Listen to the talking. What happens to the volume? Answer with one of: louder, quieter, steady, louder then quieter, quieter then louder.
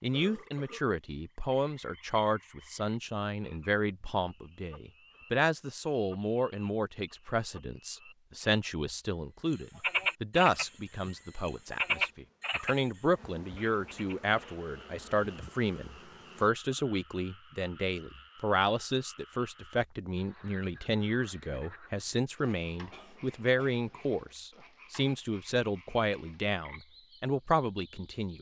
steady.